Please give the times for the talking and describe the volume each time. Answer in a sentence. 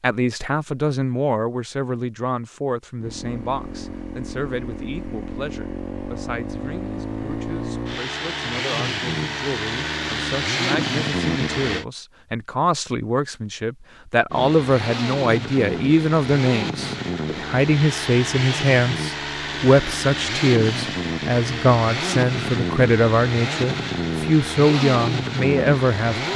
You can hear the talking from 0.0 to 26.3 s, getting quieter then louder.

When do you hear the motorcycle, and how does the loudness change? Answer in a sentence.
You can hear the motorcycle from 3.0 to 11.8 s, getting louder; and from 14.3 to 26.3 s, at a steady volume.